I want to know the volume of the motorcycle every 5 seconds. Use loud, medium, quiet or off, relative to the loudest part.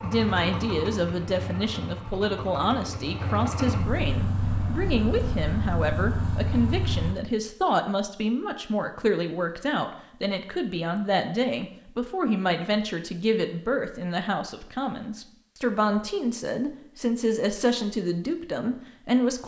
loud, loud, off, off.